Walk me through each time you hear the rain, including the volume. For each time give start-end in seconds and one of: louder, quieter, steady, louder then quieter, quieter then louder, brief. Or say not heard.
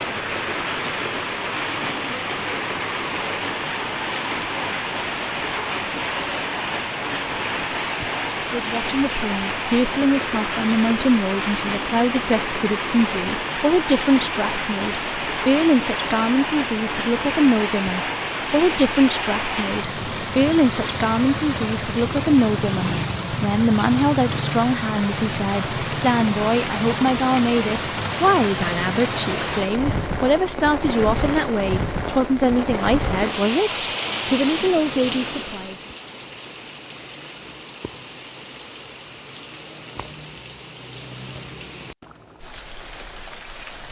0.0-43.8 quieter.